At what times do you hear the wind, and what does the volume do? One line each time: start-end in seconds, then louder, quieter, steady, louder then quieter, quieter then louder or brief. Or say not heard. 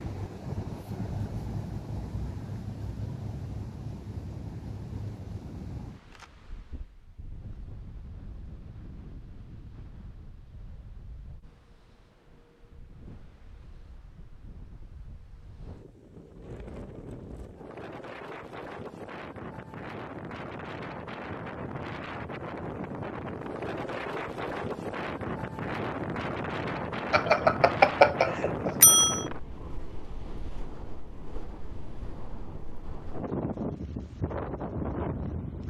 0.0-35.6 quieter then louder.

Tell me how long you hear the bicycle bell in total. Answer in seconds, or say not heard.
2 s.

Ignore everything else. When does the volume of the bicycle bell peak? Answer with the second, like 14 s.
28 s.